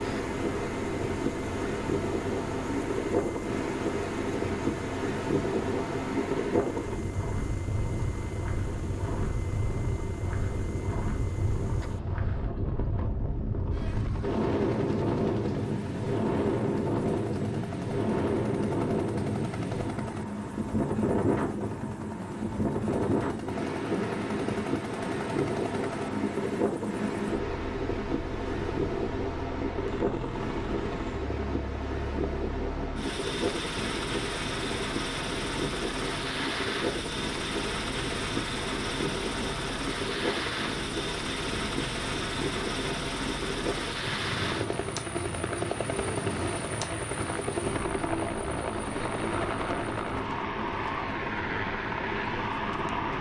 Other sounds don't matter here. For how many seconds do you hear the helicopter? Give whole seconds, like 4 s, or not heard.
53 s.